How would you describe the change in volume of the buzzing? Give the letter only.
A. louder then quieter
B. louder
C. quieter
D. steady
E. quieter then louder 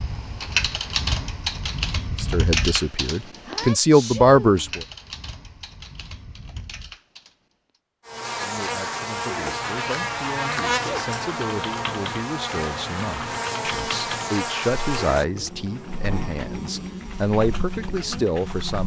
C.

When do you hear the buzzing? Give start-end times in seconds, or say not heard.
8.1-18.8.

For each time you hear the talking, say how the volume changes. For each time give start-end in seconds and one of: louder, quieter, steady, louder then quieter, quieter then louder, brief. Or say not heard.
2.2-4.8 brief
8.3-18.8 louder.